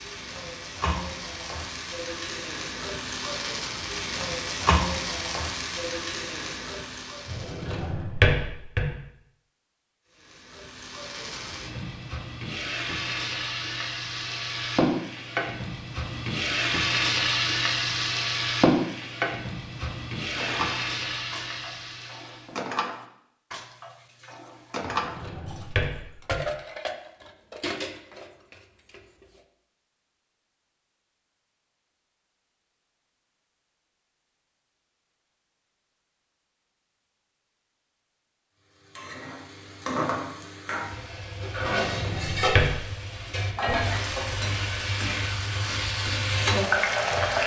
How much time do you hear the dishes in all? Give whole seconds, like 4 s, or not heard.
9 s.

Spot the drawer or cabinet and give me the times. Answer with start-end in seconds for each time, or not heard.
7.2-8.9, 24.8-26.4, 41.6-42.8.